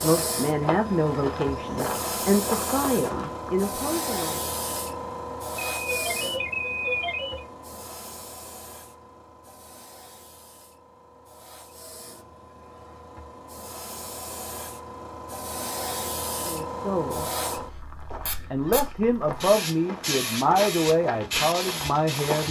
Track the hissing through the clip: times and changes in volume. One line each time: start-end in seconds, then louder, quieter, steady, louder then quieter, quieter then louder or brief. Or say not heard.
0.0-22.4 quieter then louder.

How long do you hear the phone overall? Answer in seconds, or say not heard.
2 s.